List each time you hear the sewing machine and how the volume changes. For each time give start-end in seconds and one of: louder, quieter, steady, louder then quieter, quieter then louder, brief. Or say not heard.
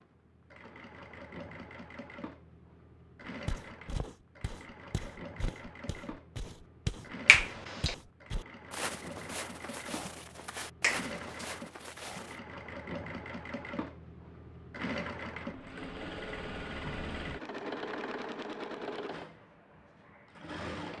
0.0-20.9 louder.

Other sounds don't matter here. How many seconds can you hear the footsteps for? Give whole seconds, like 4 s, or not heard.
9 s.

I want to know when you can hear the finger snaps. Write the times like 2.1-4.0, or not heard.
7.2-8.0, 10.8-11.6.